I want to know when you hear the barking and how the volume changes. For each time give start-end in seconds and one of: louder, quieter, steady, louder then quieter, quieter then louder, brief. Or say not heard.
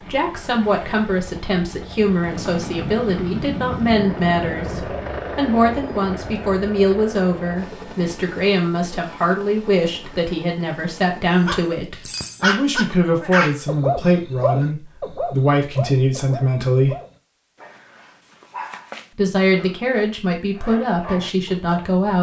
11.4-22.0 quieter.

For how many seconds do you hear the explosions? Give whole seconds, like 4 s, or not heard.
3 s.